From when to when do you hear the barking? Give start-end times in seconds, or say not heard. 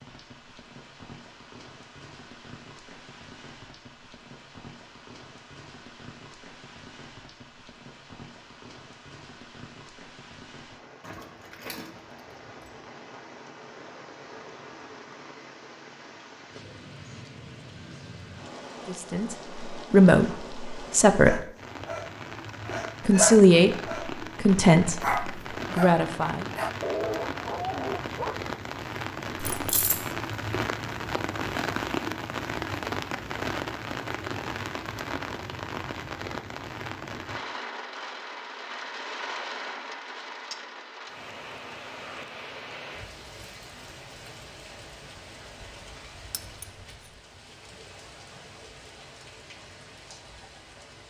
21.2-28.4.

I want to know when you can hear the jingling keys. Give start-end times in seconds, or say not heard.
11.0-12.7, 29.4-30.1, 46.3-47.1.